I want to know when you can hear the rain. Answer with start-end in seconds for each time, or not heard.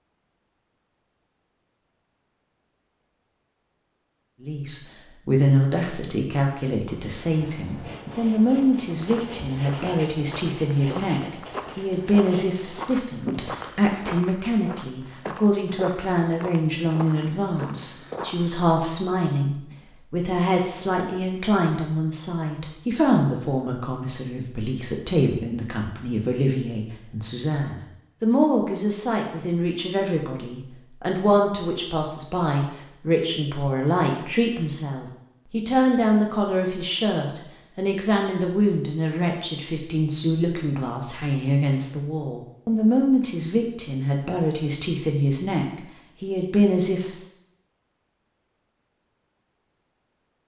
not heard.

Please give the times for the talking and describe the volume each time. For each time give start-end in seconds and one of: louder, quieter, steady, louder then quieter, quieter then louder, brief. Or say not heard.
4.4-47.2 steady.